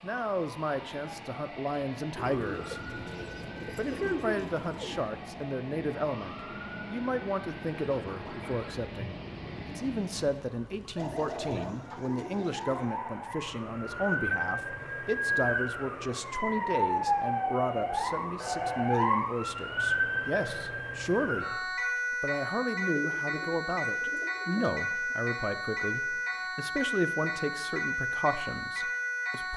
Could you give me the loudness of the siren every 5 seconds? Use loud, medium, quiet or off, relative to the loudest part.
quiet, quiet, medium, loud, loud, loud.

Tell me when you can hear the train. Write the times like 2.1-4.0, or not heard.
0.0-10.6.